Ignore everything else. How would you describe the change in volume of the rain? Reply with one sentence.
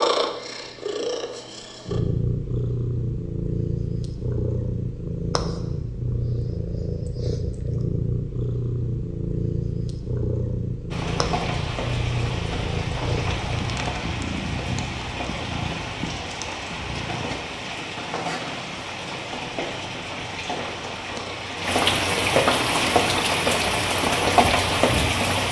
The volume of the rain goes up.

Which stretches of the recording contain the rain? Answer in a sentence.
The rain can be heard from 10.9 to 25.4 s.